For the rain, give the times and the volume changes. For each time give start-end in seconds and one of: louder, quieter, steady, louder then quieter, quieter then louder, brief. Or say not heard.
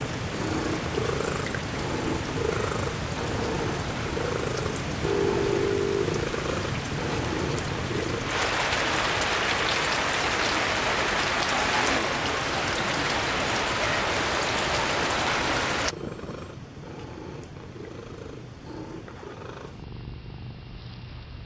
0.0-15.9 louder.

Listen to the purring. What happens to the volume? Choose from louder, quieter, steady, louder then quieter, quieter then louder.
quieter.